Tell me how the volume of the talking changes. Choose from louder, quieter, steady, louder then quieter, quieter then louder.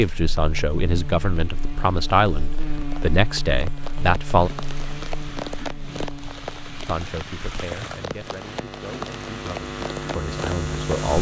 quieter then louder.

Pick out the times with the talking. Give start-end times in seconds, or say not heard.
0.0-4.5, 6.8-11.1.